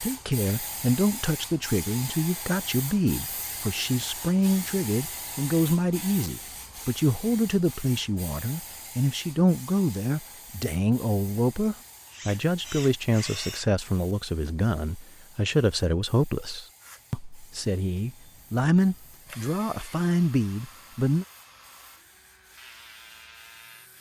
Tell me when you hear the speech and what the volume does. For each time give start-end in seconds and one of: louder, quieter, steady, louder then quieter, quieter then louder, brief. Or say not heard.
0.0-21.2 steady.